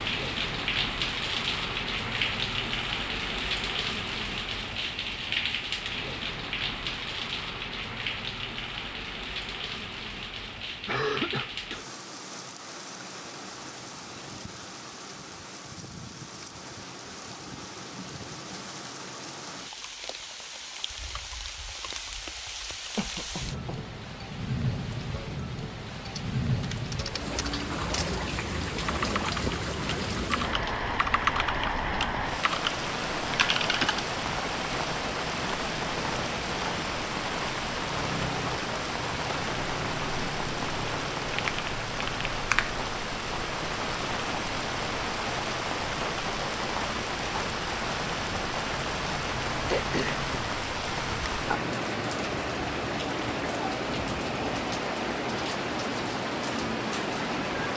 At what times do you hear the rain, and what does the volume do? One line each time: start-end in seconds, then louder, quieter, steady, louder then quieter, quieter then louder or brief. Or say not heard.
0.0-57.7 quieter then louder.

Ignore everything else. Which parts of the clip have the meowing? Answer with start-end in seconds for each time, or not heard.
not heard.